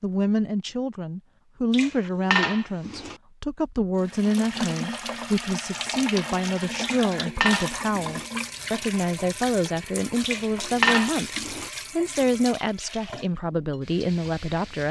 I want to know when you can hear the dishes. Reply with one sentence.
You can hear the dishes from 1.7 to 3.1 s, from 6.8 to 8.2 s and from 10.2 to 11.7 s.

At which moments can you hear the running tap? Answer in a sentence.
The running tap can be heard from 4.0 to 14.8 s.